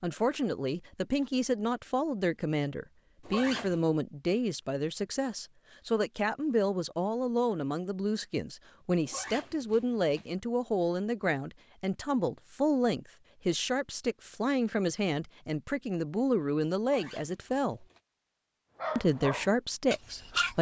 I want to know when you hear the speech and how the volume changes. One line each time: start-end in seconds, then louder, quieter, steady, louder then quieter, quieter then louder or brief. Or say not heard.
0.0-17.9 steady
18.9-20.5 brief.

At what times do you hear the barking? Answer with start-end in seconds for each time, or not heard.
18.8-20.5.